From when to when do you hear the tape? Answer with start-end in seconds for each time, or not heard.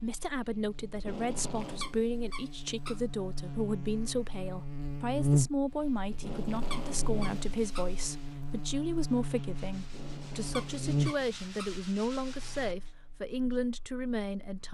0.9-2.0, 6.1-7.5, 9.8-11.3.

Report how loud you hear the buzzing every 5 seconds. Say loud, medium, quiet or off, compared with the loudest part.
medium, loud, loud.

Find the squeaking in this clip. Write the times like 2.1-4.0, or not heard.
1.6-3.0, 6.5-7.9, 10.3-11.8.